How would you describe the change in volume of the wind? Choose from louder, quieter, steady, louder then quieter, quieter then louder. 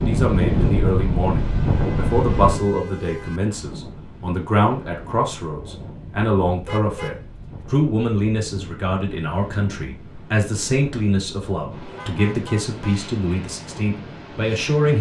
quieter.